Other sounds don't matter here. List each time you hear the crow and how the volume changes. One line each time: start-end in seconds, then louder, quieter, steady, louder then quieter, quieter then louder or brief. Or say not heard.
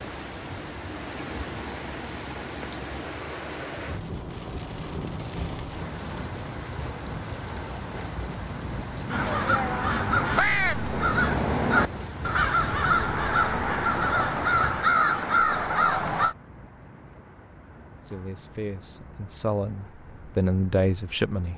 9.1-16.4 steady.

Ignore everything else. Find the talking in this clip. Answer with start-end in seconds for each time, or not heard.
18.1-21.5.